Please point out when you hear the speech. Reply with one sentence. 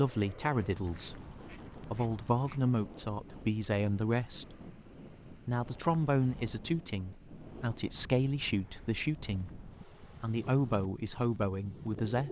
You can hear the speech from 0.0 to 4.5 s and from 5.3 to 12.2 s.